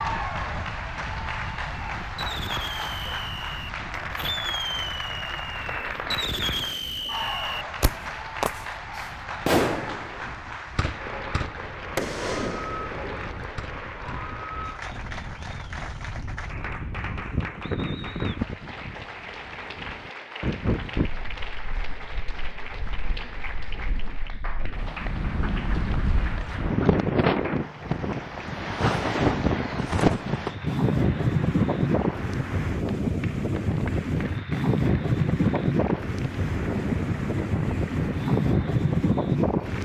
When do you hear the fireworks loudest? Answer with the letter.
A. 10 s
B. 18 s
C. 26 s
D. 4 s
A.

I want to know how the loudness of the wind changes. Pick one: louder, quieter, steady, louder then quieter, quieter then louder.
louder.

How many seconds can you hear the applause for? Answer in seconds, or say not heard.
40 s.